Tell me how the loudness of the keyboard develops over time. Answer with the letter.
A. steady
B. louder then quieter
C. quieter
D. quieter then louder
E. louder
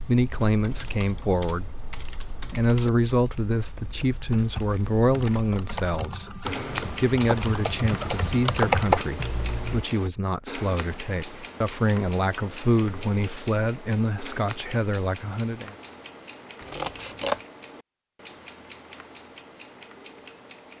E.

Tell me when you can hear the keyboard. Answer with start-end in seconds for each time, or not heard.
0.5-9.8.